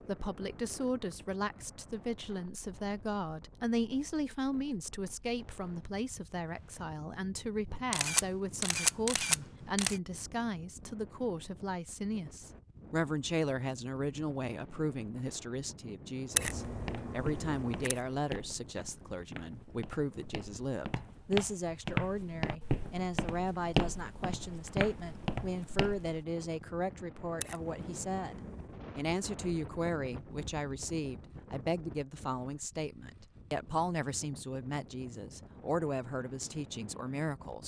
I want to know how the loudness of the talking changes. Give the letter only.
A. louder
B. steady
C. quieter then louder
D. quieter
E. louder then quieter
B.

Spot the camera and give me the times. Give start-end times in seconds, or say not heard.
7.9-10.0, 16.4-18.0, 27.4-28.8.